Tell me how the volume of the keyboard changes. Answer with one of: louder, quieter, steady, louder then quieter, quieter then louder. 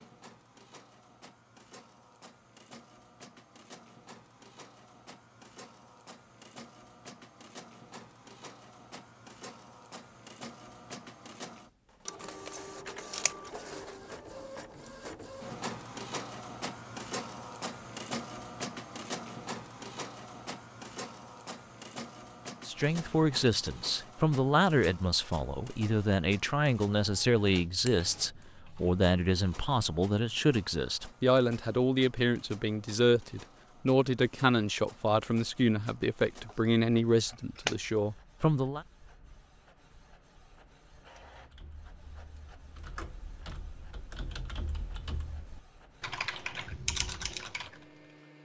louder.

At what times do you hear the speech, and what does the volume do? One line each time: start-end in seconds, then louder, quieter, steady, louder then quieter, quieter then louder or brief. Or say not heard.
22.6-38.9 steady.